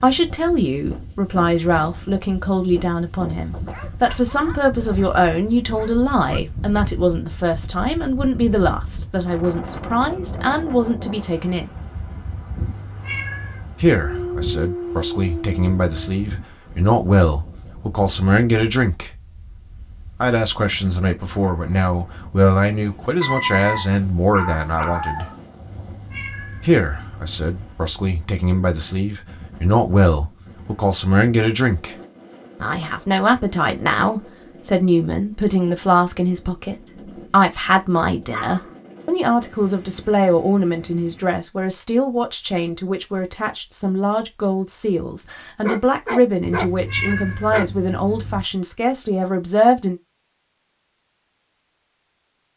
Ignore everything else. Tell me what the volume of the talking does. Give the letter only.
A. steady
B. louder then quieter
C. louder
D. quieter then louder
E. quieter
A.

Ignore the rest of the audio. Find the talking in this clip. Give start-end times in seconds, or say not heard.
0.0-11.7, 13.8-19.1, 20.2-25.2, 26.6-31.9, 32.6-50.0.